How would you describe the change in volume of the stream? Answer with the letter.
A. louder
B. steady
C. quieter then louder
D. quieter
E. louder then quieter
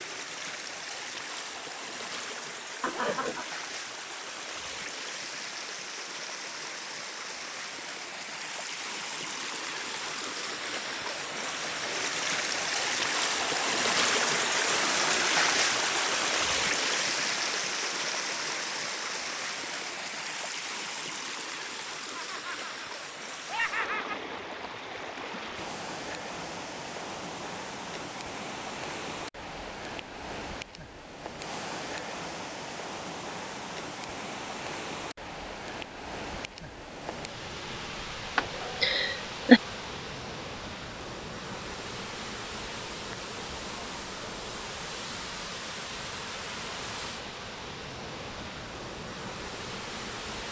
E.